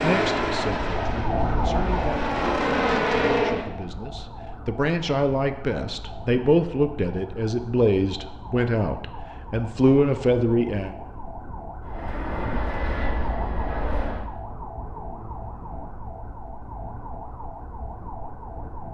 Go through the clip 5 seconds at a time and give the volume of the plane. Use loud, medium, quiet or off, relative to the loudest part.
loud, off, medium, off.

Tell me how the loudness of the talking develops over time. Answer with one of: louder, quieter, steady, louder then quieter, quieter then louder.
louder.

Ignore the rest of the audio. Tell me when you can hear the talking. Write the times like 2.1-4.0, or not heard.
0.0-10.9.